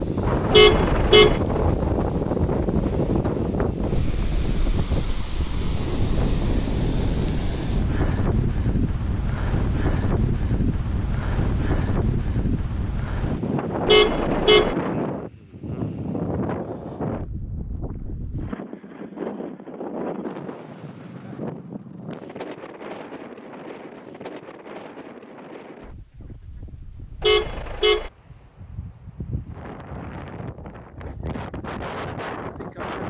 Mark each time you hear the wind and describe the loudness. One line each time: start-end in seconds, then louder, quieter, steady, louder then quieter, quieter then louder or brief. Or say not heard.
0.0-33.0 quieter.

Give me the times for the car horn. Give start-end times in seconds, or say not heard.
0.5-1.4, 13.8-14.8, 27.2-28.1.